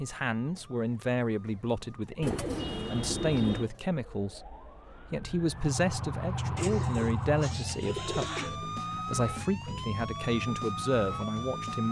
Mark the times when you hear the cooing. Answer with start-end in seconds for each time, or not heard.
2.2-3.7, 6.5-8.6.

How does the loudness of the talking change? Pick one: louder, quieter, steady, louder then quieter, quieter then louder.
steady.